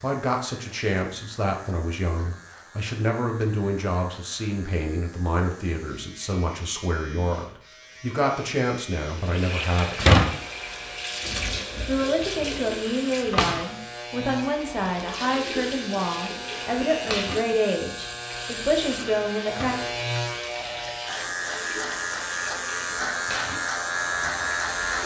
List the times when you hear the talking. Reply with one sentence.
The talking can be heard from 0.0 to 10.2 s and from 11.8 to 19.8 s.